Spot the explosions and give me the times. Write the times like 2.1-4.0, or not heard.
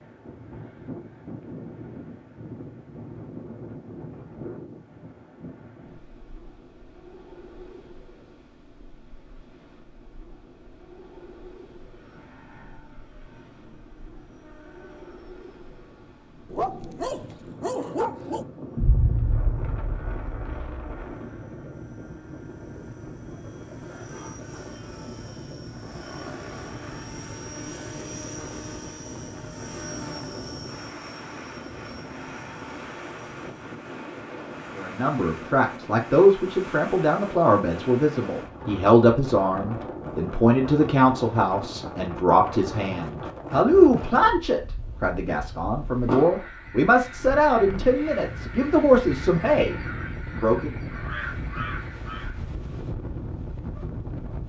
18.8-20.9, 46.0-46.5.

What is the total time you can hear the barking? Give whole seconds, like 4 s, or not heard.
2 s.